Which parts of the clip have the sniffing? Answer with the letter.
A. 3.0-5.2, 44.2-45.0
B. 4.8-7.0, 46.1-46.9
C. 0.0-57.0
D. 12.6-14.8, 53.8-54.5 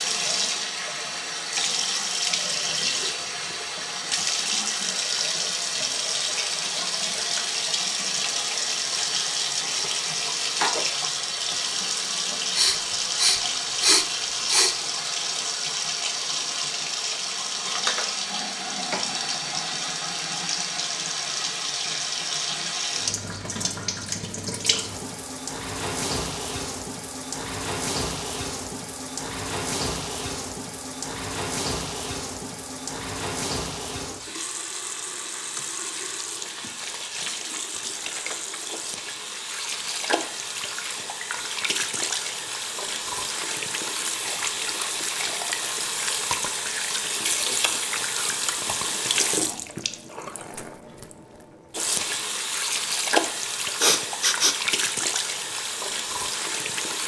D.